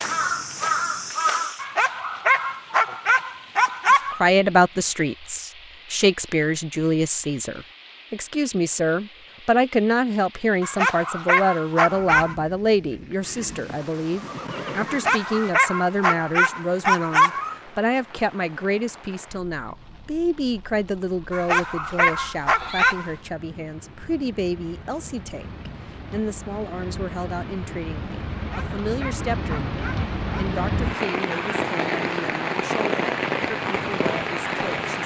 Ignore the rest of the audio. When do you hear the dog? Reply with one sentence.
The dog can be heard from 1.6 to 4.2 s, from 10.6 to 12.3 s, from 14.8 to 17.6 s, from 21.3 to 23.1 s and from 28.4 to 30.4 s.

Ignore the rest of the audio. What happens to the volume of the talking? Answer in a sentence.
The loudness of the talking goes down.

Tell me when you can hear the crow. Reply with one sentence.
The crow can be heard from 0.0 to 1.6 s.